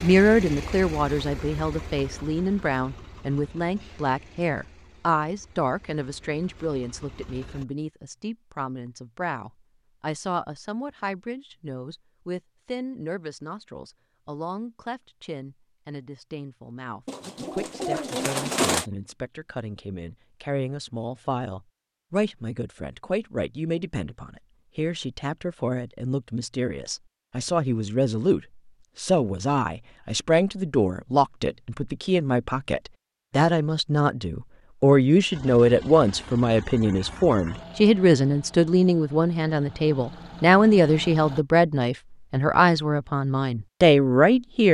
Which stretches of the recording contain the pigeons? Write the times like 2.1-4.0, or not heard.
17.1-18.9.